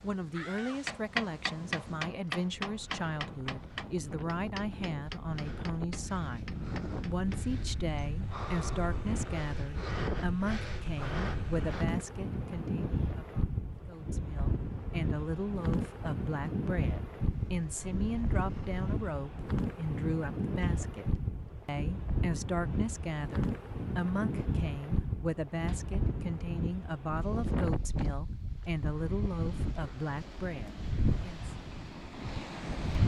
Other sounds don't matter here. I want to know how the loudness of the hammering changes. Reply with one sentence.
The volume of the hammering goes down.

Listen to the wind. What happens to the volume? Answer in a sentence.
The loudness of the wind goes up.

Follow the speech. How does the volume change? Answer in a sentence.
The loudness of the speech stays about the same.